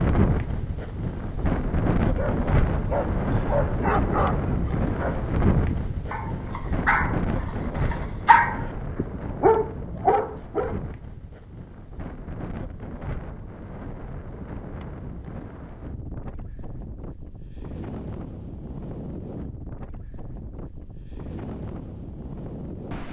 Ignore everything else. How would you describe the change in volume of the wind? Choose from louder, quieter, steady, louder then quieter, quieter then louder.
quieter.